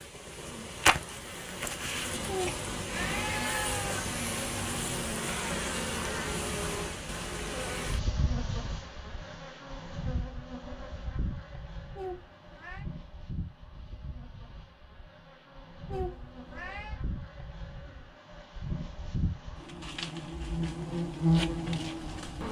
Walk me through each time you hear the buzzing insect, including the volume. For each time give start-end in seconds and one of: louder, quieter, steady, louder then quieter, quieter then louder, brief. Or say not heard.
0.0-22.4 quieter then louder.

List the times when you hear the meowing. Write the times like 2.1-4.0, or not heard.
2.2-4.0, 11.9-12.8, 15.8-17.0.